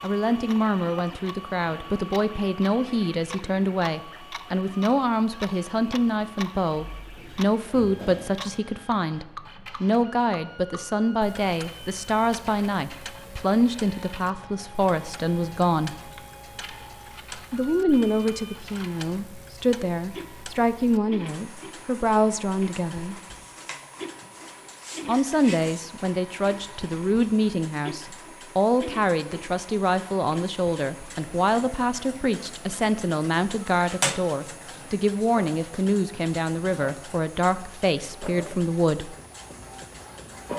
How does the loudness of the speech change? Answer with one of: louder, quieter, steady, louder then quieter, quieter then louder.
steady.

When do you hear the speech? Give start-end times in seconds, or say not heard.
0.0-15.9, 17.5-23.1, 25.1-39.1.